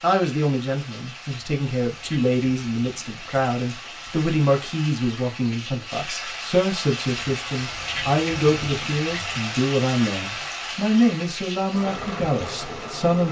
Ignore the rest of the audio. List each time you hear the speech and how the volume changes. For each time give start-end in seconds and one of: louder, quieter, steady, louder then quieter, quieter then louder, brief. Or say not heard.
0.0-13.2 steady.